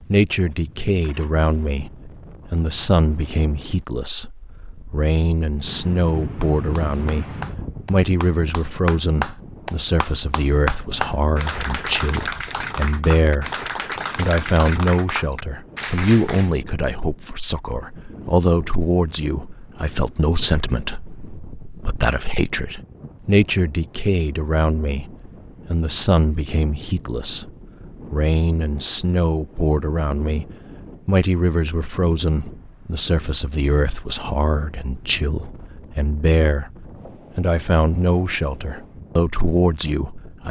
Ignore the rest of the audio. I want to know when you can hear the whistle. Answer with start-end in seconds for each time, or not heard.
not heard.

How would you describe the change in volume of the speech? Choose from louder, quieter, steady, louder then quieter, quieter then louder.
steady.